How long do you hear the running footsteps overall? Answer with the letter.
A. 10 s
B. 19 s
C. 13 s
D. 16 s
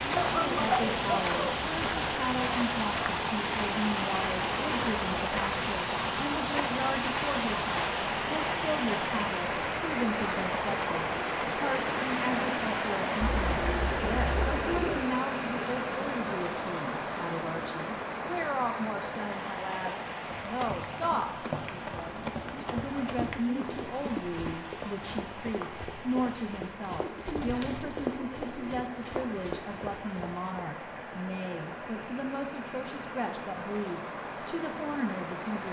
A.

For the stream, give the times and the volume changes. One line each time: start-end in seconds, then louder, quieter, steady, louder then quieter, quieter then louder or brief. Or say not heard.
0.0-35.6 quieter.